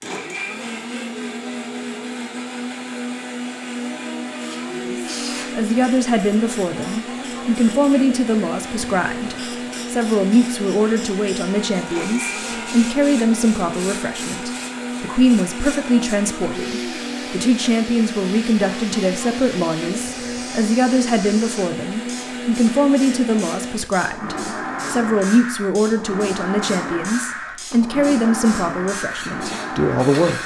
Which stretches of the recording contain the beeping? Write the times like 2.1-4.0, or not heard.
not heard.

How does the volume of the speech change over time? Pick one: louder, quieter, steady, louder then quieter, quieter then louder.
steady.